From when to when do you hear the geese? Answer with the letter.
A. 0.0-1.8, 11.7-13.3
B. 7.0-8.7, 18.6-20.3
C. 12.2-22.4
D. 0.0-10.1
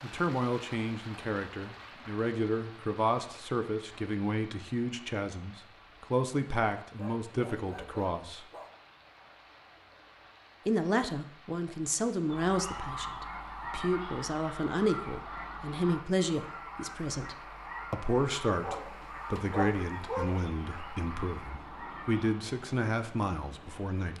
C.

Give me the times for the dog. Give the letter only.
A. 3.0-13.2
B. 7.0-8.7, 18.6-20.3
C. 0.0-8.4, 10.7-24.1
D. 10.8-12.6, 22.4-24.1
B.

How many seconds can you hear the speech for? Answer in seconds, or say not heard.
22 s.